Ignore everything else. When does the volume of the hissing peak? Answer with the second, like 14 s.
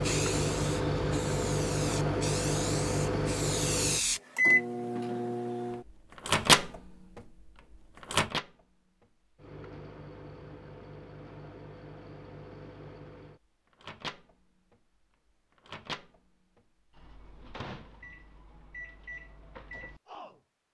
4 s.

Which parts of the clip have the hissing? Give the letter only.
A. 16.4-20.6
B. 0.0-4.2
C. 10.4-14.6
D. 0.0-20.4
B.